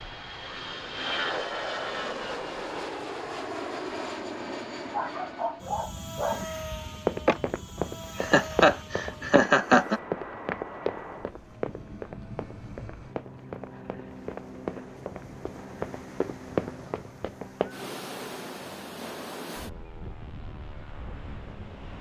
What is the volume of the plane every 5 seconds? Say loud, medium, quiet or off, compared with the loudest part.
loud, medium, medium, quiet, quiet.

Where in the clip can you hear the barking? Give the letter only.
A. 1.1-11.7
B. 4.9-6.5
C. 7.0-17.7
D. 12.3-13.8
B.